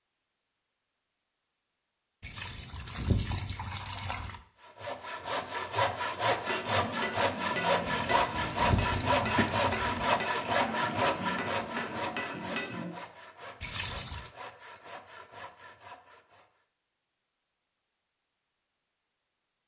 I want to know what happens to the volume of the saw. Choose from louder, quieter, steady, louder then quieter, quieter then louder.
quieter.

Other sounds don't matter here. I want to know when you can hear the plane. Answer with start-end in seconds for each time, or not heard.
not heard.